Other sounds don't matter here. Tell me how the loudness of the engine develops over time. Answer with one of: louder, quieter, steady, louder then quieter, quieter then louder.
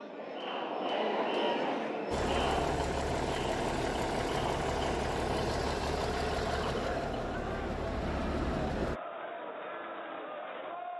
steady.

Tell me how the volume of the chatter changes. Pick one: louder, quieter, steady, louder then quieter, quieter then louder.
quieter.